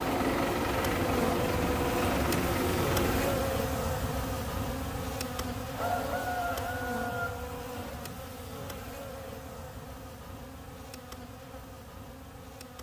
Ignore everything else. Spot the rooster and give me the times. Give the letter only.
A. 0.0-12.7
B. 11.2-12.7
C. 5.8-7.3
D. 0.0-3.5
C.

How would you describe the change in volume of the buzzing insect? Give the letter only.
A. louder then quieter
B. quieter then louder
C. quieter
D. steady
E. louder
C.